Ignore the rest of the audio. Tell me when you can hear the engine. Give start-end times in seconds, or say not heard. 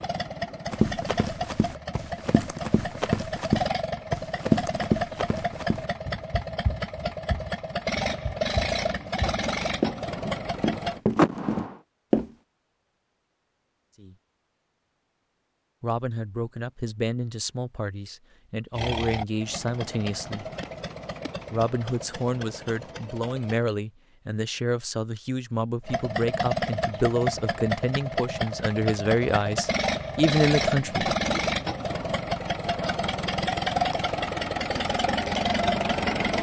0.0-11.0, 18.7-23.6, 25.9-36.3.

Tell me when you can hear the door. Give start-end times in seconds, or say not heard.
11.2-11.8.